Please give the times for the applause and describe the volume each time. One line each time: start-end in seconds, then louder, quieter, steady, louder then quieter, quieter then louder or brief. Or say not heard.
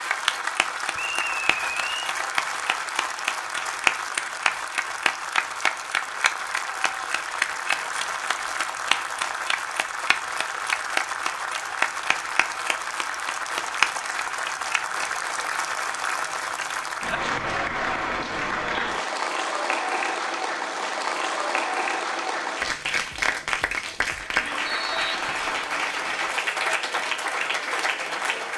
0.0-28.5 steady.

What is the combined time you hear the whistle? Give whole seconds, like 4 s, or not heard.
2 s.